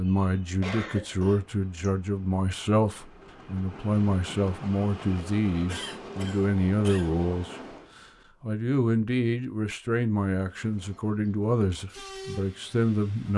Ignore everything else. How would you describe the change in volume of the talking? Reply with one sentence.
The volume of the talking stays about the same.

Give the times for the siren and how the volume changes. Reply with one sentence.
The siren can't be heard in this clip.